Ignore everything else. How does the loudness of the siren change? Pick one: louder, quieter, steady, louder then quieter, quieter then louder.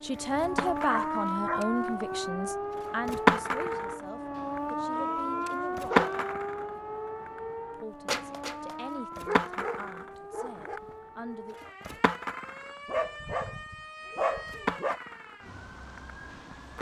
quieter.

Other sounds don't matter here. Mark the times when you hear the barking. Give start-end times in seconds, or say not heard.
0.1-2.1, 4.3-6.3, 9.2-10.8, 12.8-15.0.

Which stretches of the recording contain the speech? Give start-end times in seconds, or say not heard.
0.0-6.0, 7.7-11.6.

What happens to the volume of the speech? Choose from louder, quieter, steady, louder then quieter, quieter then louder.
quieter.